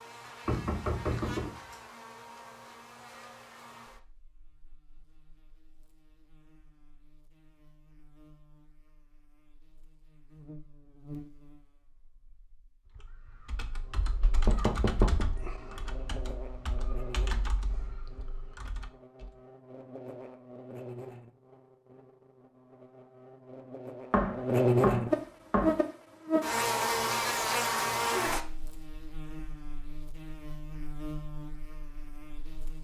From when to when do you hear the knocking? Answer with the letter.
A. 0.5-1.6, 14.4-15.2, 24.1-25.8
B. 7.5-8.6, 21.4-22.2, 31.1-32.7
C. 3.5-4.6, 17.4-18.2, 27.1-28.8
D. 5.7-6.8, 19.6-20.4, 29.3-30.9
A.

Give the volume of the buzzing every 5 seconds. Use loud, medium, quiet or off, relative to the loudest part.
quiet, quiet, quiet, quiet, loud, loud, quiet.